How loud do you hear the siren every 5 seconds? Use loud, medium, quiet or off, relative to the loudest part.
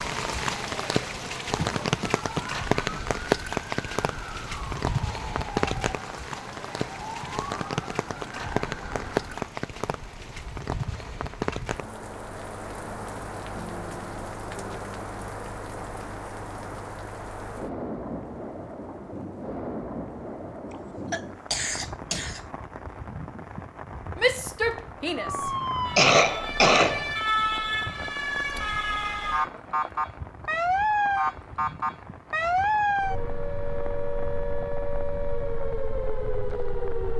quiet, quiet, off, off, off, loud, loud, medium.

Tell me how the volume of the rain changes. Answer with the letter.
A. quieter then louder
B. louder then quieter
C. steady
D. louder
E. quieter
E.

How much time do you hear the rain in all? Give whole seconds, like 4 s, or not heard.
37 s.